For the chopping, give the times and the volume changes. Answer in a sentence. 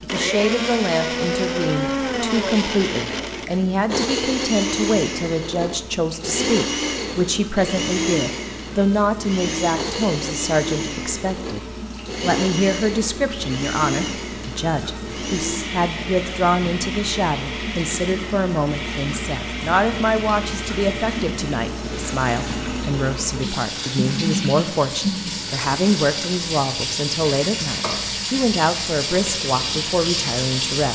You can't hear the chopping here.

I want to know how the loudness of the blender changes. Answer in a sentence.
The volume of the blender goes down.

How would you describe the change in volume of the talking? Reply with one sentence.
The volume of the talking stays about the same.